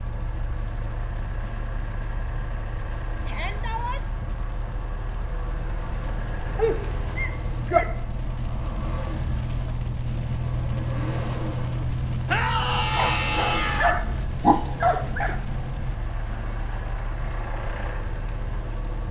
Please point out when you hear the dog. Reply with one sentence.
The dog can be heard from 6.5 to 7.8 s and from 12.9 to 15.3 s.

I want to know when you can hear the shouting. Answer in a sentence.
You can hear the shouting from 3.2 to 4.0 s and from 12.2 to 13.9 s.